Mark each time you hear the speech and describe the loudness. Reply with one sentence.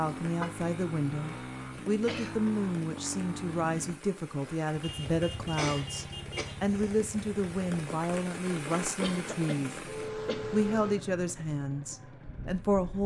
The speech can be heard from 0.0 to 9.8 s, at a steady volume; and briefly from 10.5 to 13.0 s.